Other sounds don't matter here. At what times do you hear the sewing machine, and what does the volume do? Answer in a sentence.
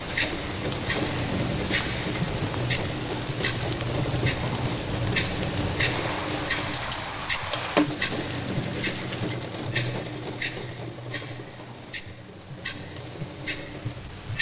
The sewing machine can be heard from 0.0 to 14.3 s, getting quieter.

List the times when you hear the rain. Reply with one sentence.
The rain can be heard from 0.0 to 9.3 s.